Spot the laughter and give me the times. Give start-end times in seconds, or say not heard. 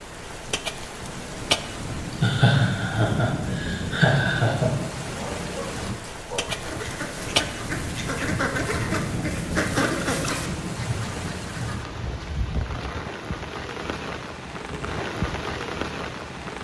2.1-4.7.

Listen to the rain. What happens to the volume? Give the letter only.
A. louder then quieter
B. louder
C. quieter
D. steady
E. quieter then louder
D.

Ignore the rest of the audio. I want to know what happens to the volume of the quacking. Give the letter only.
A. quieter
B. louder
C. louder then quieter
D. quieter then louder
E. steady
C.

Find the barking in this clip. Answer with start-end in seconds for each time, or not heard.
5.1-6.5.